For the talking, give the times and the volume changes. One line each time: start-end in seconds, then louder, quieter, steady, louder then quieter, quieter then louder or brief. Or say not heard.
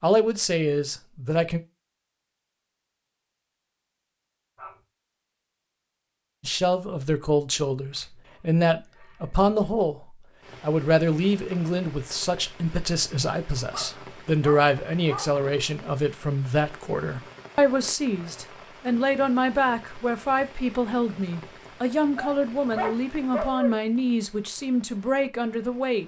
0.0-1.6 brief
6.4-26.0 steady.